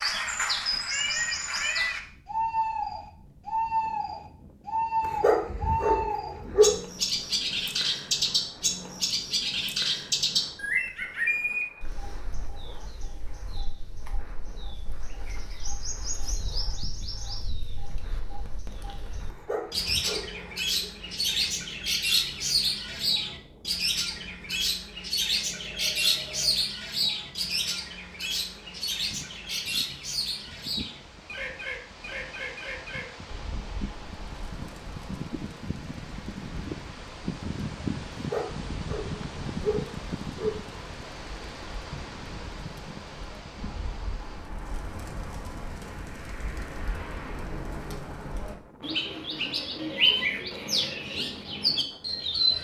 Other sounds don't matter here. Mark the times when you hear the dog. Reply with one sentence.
The dog can be heard from 5.0 to 6.8 s, from 19.3 to 20.9 s and from 38.1 to 40.7 s.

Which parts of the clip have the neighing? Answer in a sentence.
The neighing can't be heard in this clip.